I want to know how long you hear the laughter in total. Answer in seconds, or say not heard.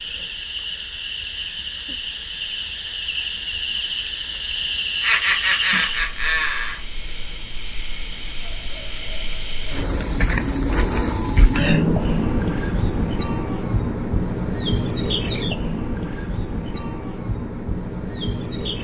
2 s.